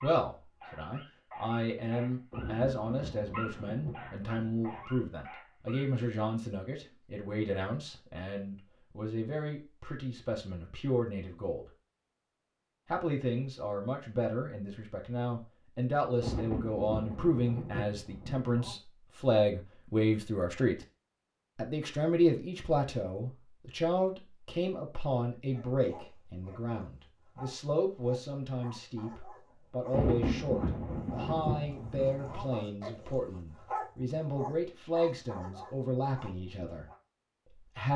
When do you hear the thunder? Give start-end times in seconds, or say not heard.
2.3-4.9, 16.2-18.8, 29.9-32.5.